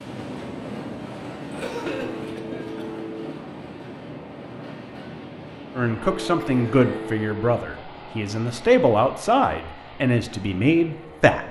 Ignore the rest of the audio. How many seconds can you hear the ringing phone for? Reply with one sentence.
You can hear the ringing phone for 3 seconds altogether.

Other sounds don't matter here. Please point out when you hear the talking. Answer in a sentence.
You can hear the talking from 5.8 to 11.4 s.